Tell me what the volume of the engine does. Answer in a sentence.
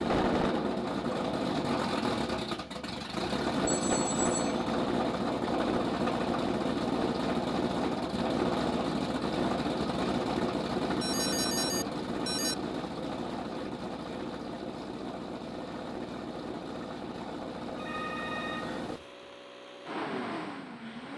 The loudness of the engine goes down.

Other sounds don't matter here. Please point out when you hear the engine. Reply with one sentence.
You can hear the engine from 0.0 to 21.1 s.